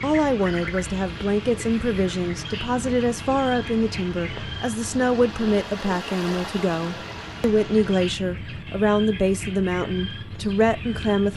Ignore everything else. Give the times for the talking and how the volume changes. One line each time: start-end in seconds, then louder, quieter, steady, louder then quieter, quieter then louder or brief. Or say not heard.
0.0-11.3 steady.